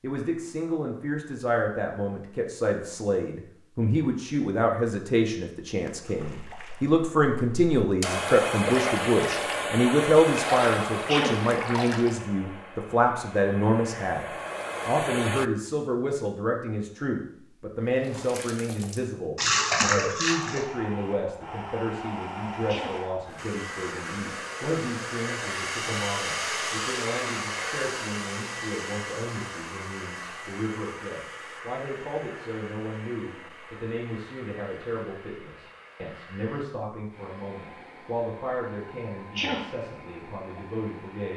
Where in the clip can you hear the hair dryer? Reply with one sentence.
The hair dryer can be heard from 8.0 to 15.5 s and from 20.2 to 41.3 s.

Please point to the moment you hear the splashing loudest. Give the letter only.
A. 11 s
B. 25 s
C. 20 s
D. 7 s
C.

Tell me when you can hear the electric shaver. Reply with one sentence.
The electric shaver can't be heard in this clip.